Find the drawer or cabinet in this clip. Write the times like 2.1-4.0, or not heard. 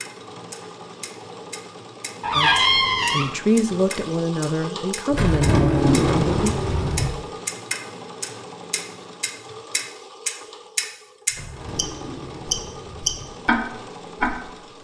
2.2-3.3, 5.1-7.1, 11.3-13.3.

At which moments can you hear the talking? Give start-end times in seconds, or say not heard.
2.4-6.5.